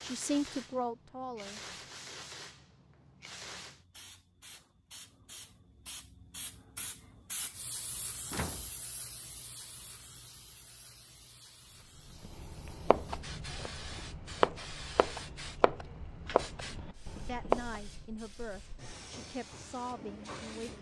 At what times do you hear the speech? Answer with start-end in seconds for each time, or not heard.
0.0-1.6, 17.2-20.7.